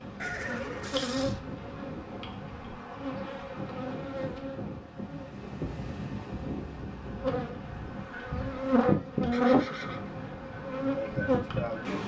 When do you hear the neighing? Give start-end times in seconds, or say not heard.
0.1-1.4, 9.3-10.1.